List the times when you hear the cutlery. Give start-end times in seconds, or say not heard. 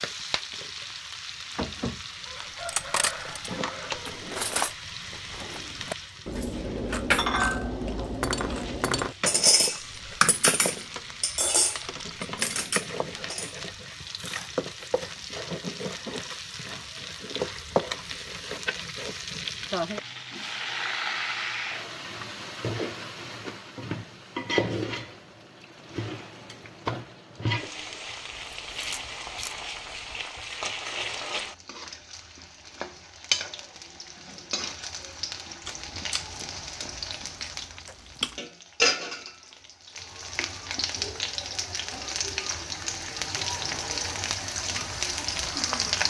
2.6-13.6.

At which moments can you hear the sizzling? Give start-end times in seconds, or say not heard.
0.0-46.0.